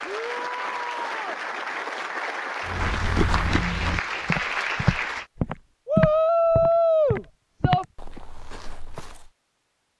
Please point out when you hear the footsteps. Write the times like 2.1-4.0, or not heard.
2.6-9.3.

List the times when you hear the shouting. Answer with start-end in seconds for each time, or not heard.
0.0-1.4, 5.8-7.8.